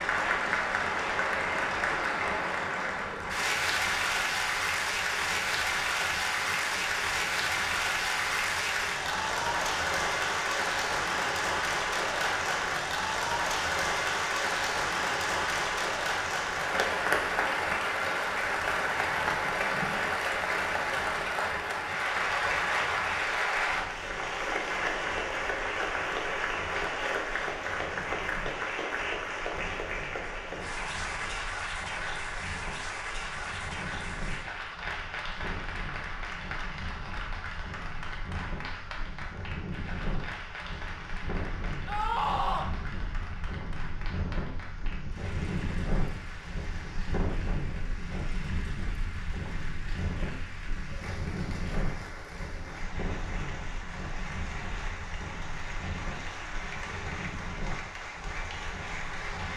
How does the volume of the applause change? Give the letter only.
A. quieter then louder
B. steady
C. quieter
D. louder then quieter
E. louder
C.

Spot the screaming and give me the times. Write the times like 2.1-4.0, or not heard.
41.9-42.7.